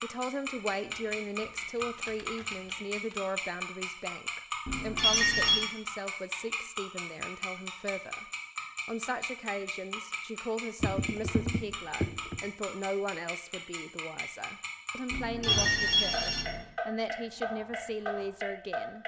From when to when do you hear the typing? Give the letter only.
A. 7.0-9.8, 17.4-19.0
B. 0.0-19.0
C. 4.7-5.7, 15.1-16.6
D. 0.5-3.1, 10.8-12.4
D.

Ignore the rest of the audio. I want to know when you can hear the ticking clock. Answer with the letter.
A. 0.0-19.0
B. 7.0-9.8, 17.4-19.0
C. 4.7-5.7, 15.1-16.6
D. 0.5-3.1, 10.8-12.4
A.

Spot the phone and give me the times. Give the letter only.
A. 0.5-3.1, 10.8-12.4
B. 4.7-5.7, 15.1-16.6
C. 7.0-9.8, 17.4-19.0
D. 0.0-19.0
B.